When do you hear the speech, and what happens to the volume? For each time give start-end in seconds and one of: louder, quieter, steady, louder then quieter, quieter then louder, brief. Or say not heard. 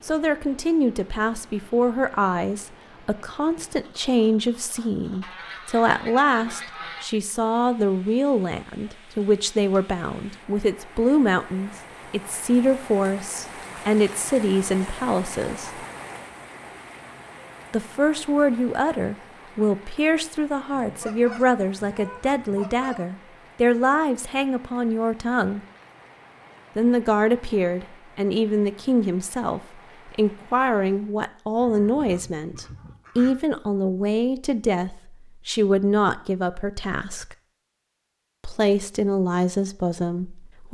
0.0-15.7 steady
17.7-25.6 steady
26.8-37.4 steady
38.4-40.6 brief.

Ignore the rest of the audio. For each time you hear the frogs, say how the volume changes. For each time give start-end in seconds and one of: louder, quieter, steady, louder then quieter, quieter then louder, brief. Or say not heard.
not heard.